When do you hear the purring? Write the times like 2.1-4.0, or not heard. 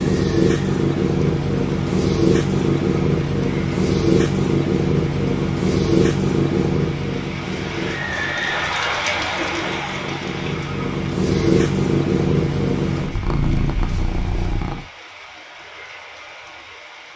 0.0-14.8.